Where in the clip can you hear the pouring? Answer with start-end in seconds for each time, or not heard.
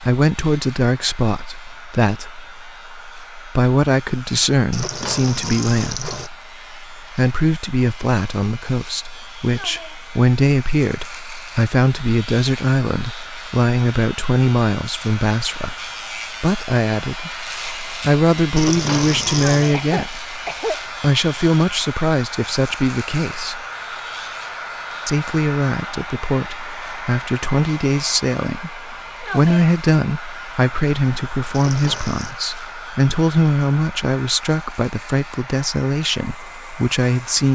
4.7-6.3, 18.6-19.8, 31.5-32.4.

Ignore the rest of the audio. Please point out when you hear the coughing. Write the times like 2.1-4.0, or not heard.
19.7-20.9.